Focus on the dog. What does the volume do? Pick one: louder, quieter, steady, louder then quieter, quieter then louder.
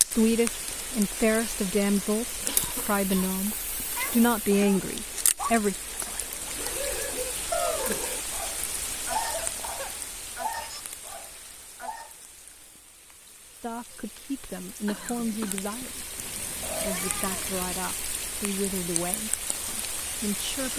louder then quieter.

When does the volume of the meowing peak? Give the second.
8 s.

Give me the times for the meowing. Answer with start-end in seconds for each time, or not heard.
3.5-4.8, 7.5-8.1, 16.1-17.8.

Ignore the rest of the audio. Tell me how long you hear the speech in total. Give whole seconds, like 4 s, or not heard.
13 s.